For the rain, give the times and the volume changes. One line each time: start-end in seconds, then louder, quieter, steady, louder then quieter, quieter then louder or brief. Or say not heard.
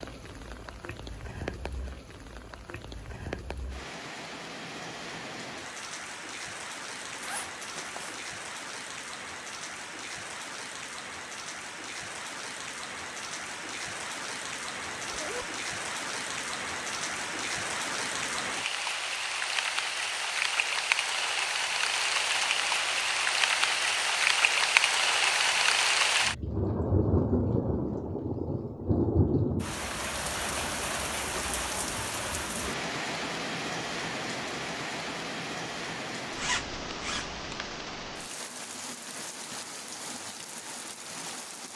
0.0-41.7 louder then quieter.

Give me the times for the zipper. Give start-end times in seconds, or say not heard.
7.0-8.2, 14.9-15.4, 36.4-37.6.